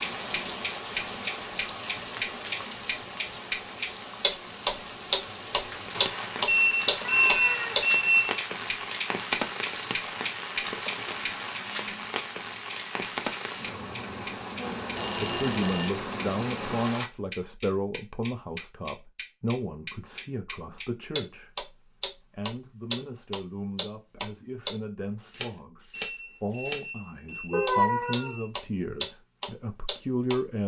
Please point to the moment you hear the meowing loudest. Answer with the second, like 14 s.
28 s.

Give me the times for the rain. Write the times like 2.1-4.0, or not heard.
0.0-17.1.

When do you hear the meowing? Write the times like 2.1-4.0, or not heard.
5.9-7.8, 11.4-12.3, 27.5-28.4.